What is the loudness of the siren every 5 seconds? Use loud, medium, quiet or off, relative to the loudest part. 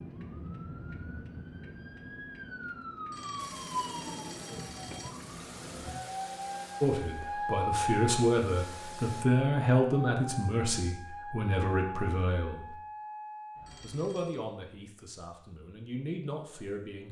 medium, loud, medium, off.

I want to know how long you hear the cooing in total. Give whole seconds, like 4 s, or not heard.
not heard.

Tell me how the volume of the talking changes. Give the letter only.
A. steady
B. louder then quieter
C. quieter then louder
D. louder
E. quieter
E.